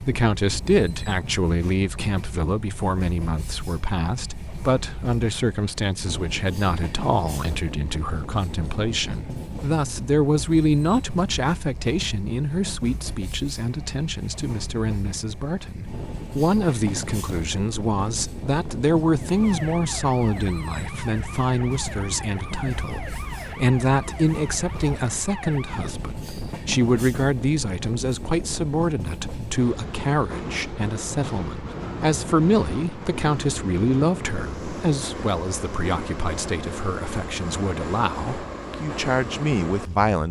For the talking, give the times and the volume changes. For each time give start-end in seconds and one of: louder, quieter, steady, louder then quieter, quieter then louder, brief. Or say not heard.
0.0-40.2 steady.